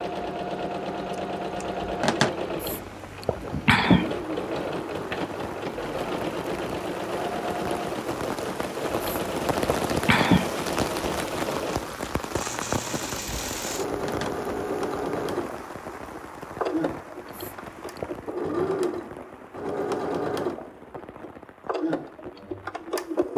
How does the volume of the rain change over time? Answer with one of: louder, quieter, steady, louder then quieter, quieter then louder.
louder then quieter.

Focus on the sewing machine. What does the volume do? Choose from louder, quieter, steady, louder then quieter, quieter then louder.
steady.